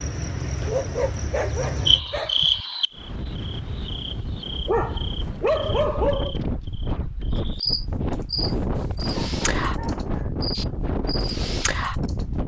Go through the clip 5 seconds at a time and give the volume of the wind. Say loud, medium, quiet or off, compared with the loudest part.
medium, loud, loud.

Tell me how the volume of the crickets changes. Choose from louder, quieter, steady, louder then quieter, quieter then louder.
quieter then louder.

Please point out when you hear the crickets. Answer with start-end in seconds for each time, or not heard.
0.0-12.2.